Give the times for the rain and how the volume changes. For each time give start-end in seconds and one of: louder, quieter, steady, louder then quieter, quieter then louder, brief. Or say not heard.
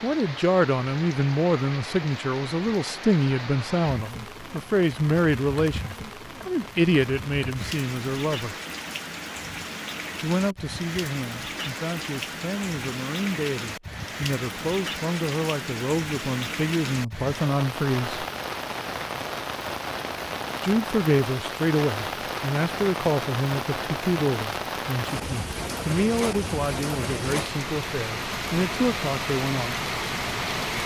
0.0-30.8 louder.